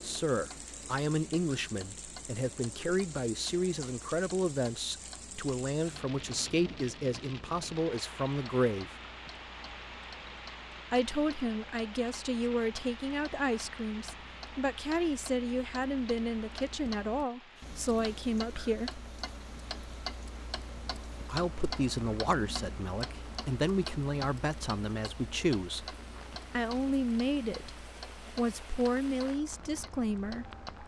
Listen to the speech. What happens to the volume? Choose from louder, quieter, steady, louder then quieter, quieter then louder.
steady.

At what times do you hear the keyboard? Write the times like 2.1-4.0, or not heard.
not heard.